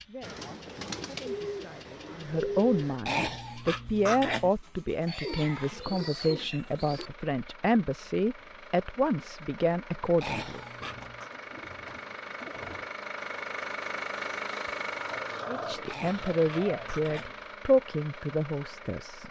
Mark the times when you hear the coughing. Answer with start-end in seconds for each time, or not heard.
3.0-4.5, 10.2-11.3, 15.8-17.4.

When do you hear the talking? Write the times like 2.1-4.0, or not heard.
0.0-10.6, 15.4-19.2.